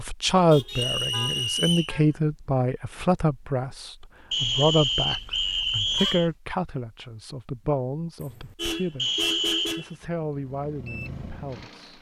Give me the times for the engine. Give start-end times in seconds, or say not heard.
10.1-11.9.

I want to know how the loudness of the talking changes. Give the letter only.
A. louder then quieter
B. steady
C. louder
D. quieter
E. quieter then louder
D.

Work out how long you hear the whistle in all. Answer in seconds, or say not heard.
4 s.